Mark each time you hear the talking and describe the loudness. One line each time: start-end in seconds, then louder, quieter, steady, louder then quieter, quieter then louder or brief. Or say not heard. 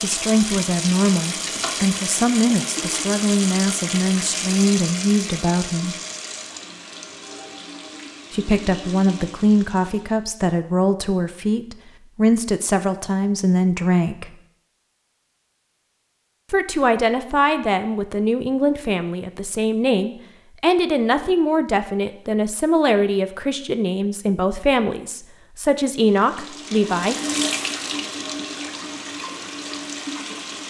0.0-6.0 steady
8.3-14.3 steady
16.5-27.1 steady.